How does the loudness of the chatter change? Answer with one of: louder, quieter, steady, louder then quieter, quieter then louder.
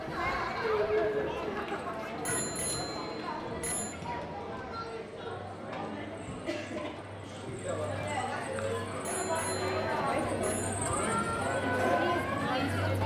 quieter then louder.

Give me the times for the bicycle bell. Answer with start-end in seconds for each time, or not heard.
2.2-4.0, 9.0-10.8.